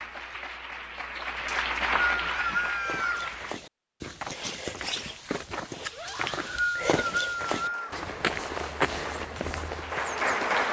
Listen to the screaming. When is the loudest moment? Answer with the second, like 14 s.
3 s.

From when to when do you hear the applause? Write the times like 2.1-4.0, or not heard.
0.0-3.5, 7.4-10.6.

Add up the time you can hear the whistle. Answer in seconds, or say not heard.
4 s.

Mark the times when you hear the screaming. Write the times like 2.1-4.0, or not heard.
2.2-3.2, 5.9-6.5.